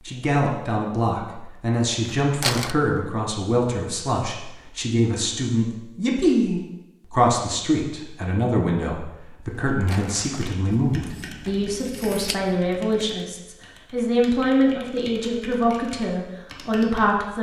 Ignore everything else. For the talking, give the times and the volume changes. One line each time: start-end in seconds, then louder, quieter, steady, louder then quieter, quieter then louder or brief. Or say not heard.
0.1-17.3 steady.